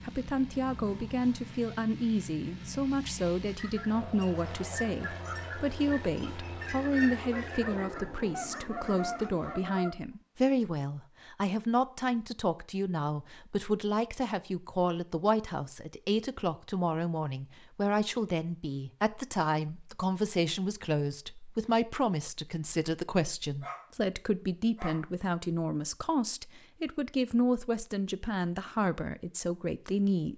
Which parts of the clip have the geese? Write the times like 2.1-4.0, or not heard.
3.5-9.9.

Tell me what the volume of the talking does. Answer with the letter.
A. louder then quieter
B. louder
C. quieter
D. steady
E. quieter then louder
D.